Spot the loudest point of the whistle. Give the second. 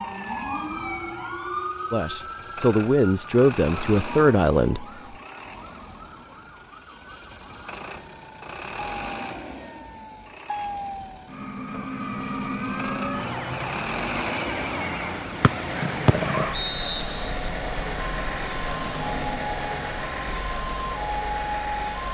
16 s.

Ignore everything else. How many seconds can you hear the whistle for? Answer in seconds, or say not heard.
2 s.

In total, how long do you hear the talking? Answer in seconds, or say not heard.
3 s.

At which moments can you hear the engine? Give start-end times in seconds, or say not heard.
0.0-22.1.